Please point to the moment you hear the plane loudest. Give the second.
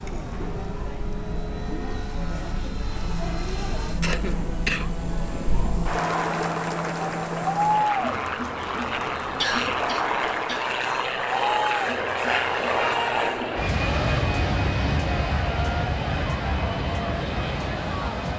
13 s.